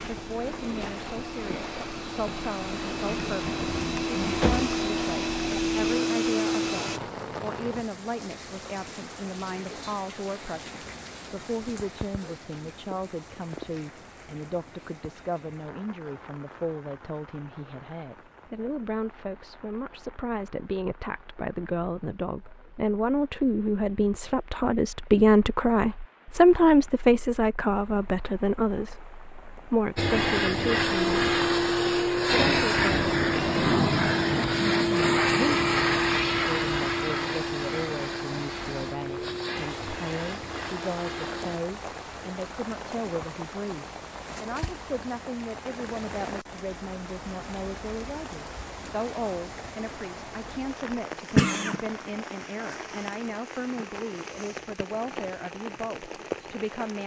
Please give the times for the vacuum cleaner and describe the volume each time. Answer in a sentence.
The vacuum cleaner can be heard from 0.0 to 7.0 s, getting louder; and from 29.9 to 41.6 s, getting quieter.